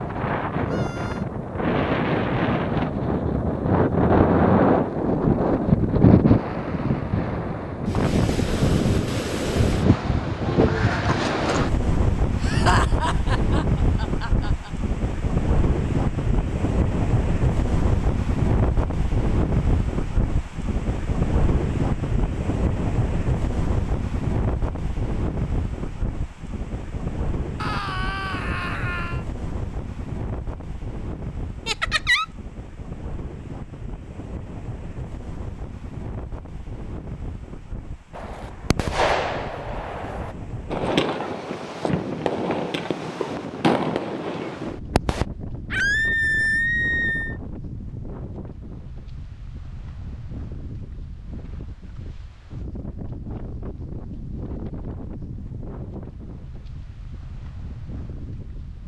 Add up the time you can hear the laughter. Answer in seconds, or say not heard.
3 s.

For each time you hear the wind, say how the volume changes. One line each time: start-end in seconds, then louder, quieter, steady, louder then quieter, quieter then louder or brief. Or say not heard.
0.0-58.8 quieter.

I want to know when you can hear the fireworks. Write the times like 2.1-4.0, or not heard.
38.1-45.2.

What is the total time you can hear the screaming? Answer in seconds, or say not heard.
4 s.